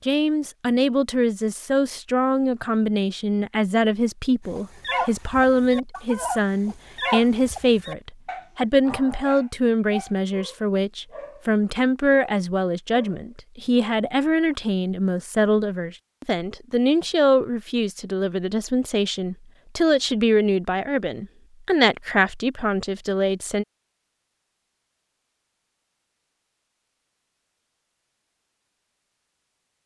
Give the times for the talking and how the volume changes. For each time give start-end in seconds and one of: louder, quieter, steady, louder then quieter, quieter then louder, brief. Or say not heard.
0.1-23.6 steady.